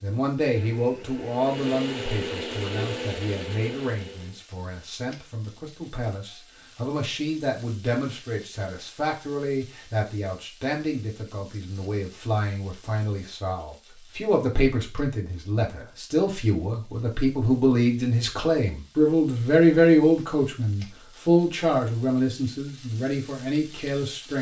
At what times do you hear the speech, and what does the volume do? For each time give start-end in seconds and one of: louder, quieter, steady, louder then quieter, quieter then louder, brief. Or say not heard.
0.0-24.3 louder.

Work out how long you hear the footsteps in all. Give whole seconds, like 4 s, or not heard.
not heard.